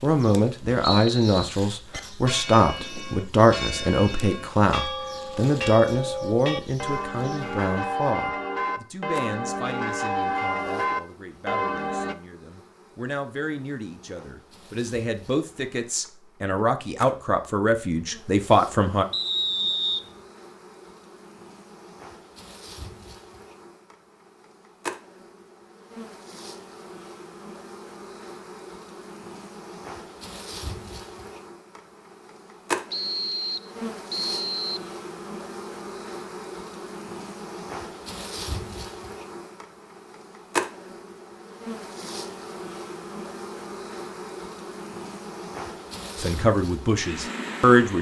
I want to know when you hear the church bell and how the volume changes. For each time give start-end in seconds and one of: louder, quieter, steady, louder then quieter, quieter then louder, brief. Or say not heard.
1.9-12.2 louder.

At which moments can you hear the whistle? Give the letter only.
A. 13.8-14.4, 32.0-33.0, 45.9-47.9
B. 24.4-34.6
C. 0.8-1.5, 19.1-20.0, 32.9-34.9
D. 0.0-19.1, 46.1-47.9
C.